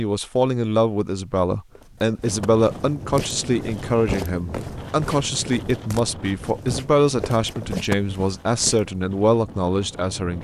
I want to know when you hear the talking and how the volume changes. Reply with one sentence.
The talking can be heard from 0.0 to 10.4 s, at a steady volume.